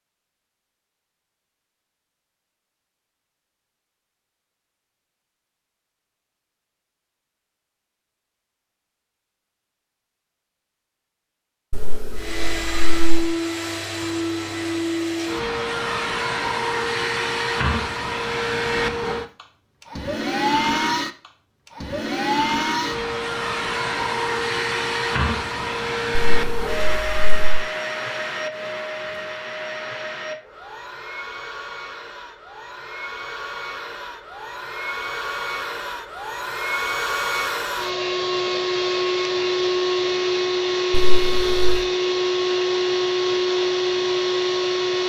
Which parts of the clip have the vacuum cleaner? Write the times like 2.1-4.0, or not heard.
12.2-45.0.